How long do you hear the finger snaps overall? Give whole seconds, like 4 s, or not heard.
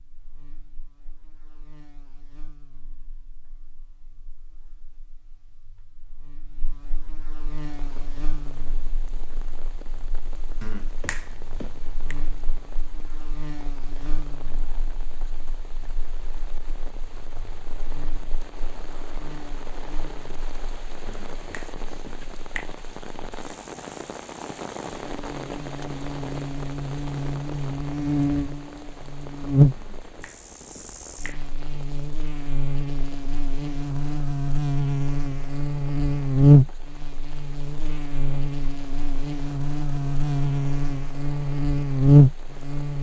5 s.